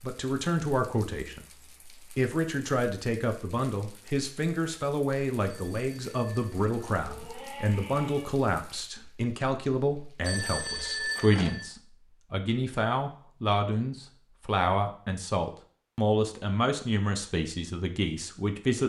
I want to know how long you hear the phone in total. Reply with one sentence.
The phone can be heard for 3 seconds in total.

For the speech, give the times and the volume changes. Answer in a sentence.
The speech can be heard from 0.0 to 18.8 s, at a steady volume.